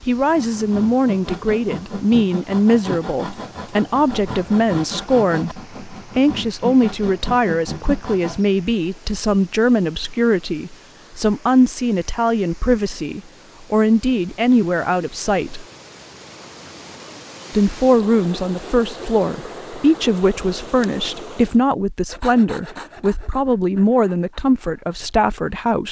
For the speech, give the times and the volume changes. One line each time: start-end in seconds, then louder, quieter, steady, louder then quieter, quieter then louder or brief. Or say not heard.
0.0-15.7 steady
17.5-25.8 steady.